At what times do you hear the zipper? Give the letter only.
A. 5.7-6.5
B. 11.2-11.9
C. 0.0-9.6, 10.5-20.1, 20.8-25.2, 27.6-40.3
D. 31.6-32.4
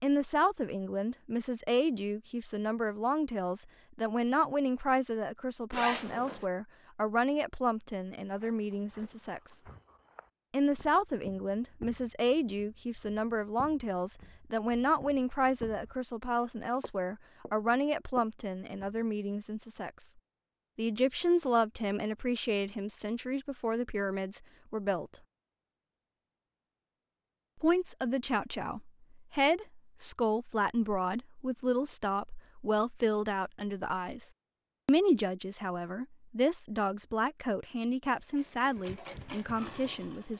A.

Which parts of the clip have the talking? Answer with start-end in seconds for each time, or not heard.
0.0-9.6, 10.5-20.1, 20.8-25.2, 27.6-40.3.